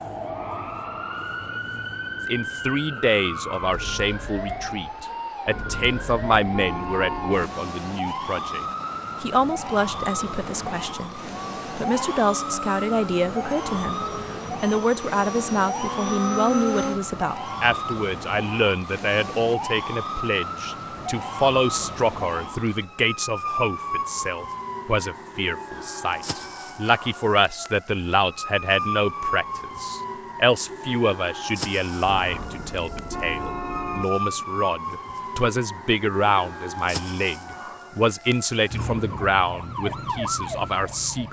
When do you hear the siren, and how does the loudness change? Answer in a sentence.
The siren can be heard from 0.0 to 41.2 s, at a steady volume.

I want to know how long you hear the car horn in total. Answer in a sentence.
The car horn can be heard for 4 seconds in total.